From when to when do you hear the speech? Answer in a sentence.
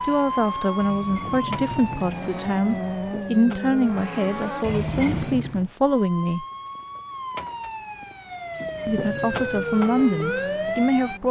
The speech can be heard from 0.0 to 6.5 s and from 8.8 to 11.2 s.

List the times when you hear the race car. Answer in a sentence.
The race car can be heard from 0.0 to 5.7 s and from 8.5 to 11.2 s.